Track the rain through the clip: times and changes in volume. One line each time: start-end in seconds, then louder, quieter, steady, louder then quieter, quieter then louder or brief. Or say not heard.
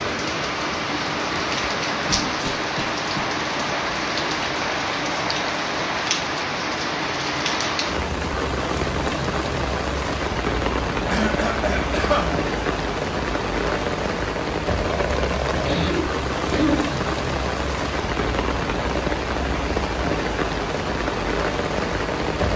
0.0-22.5 steady.